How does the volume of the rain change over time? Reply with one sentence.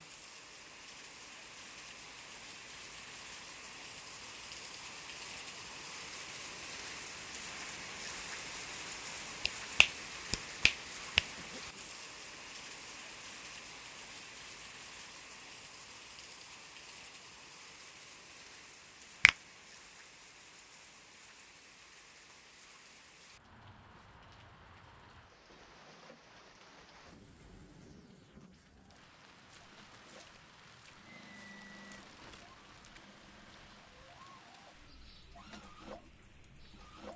The volume of the rain goes down.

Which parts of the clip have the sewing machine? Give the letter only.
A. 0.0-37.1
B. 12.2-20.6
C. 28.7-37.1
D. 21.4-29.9
C.